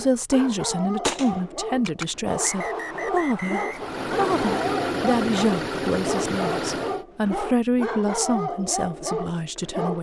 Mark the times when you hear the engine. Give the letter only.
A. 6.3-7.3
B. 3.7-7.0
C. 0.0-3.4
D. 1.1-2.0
B.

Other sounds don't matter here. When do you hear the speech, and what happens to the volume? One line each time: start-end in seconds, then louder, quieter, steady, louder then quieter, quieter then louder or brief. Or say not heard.
0.0-9.9 steady.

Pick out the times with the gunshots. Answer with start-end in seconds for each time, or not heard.
1.1-2.0.